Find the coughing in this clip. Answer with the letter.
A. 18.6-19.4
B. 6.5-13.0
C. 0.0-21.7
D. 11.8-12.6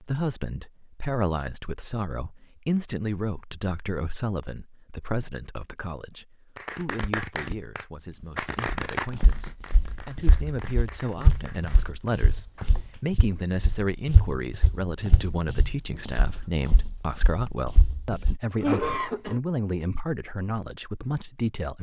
A.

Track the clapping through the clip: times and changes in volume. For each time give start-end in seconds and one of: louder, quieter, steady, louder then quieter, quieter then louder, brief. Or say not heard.
6.5-13.0 quieter.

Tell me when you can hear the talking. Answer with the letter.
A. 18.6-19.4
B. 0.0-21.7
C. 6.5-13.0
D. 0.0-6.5
B.